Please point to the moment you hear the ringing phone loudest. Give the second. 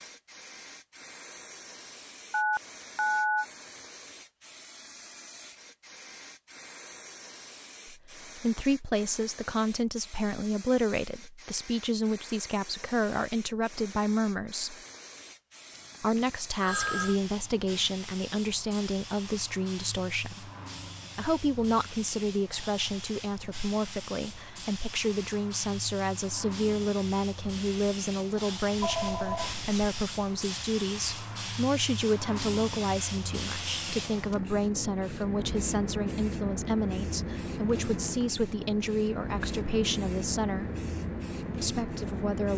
3 s.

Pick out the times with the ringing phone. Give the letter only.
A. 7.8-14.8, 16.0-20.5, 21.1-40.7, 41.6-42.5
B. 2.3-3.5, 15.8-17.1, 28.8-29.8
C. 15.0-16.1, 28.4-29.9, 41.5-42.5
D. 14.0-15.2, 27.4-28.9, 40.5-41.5
B.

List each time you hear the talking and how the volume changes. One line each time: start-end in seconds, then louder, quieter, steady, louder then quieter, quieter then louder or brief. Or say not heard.
7.8-14.8 steady
16.0-20.5 steady
21.1-40.7 steady
41.6-42.5 brief.